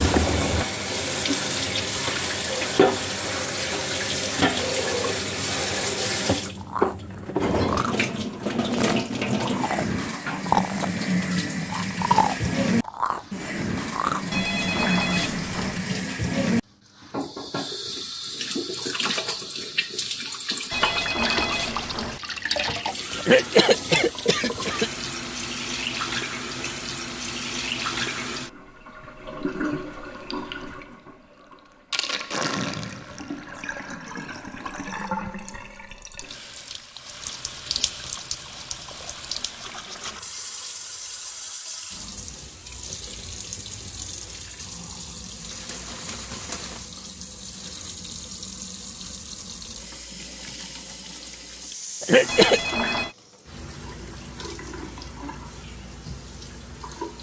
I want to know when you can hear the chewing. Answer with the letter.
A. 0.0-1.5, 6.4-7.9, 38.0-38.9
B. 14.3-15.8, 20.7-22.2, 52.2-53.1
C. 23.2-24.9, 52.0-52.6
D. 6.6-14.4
D.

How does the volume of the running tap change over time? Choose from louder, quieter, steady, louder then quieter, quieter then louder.
quieter.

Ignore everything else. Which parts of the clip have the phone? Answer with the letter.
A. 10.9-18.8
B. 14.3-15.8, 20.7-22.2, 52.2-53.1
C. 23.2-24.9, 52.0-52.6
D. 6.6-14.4
B.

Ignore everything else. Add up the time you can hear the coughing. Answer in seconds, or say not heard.
2 s.